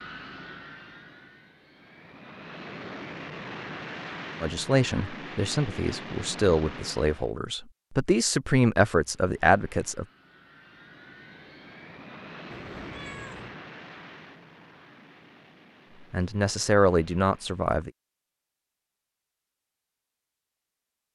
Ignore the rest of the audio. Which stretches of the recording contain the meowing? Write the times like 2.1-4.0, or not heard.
12.5-13.6.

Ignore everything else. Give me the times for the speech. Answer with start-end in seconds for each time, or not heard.
4.4-10.1, 16.1-17.9.